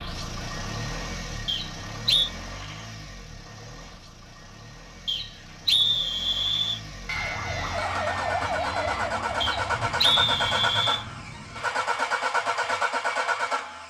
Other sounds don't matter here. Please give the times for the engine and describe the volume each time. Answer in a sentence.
You can hear the engine from 0.0 to 13.8 s, getting quieter then louder.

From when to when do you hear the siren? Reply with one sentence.
The siren can be heard from 7.2 to 13.8 s.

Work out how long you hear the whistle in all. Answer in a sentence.
You can hear the whistle for 4 seconds altogether.